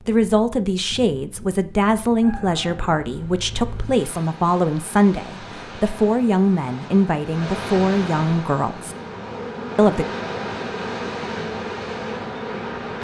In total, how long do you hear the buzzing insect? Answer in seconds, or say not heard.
4 s.